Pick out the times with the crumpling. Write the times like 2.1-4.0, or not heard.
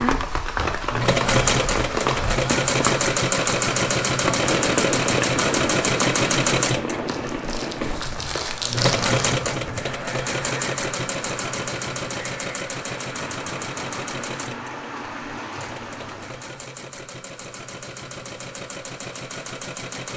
7.0-9.2.